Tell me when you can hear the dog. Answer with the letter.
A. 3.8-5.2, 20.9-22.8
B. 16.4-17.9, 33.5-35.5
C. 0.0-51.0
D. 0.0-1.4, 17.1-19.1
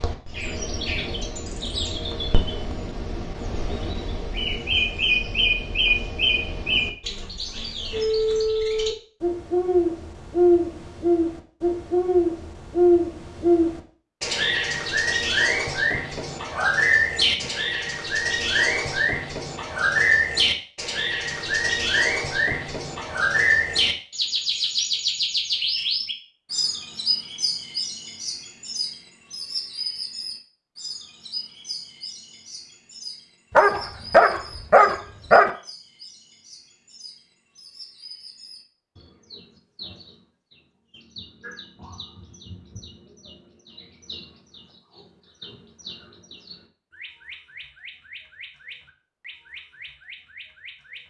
B.